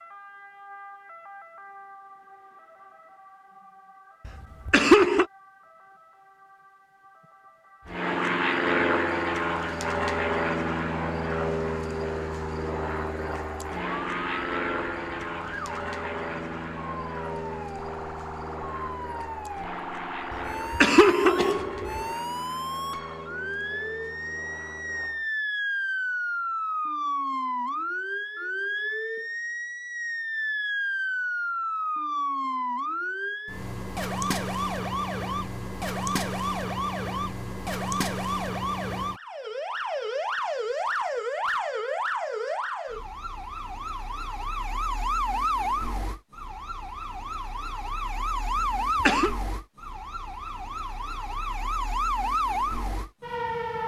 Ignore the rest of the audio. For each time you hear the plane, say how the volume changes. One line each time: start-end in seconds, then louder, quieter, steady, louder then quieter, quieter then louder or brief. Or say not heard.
7.8-25.3 quieter.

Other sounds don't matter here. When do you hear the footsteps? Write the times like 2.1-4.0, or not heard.
not heard.